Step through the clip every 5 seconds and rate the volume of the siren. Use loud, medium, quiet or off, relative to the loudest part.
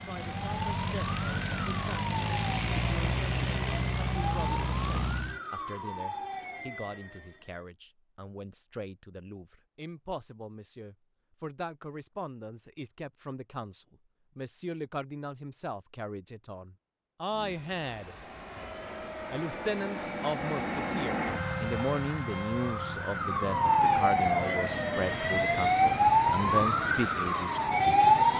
quiet, quiet, off, off, loud, loud.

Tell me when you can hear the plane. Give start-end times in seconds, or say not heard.
0.0-5.4, 17.3-28.3.